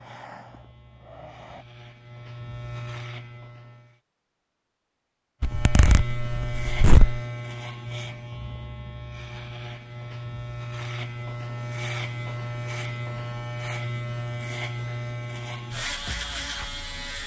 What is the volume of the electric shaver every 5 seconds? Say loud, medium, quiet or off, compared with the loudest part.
medium, loud, loud, loud.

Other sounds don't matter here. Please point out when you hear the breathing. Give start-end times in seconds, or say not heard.
0.0-1.6.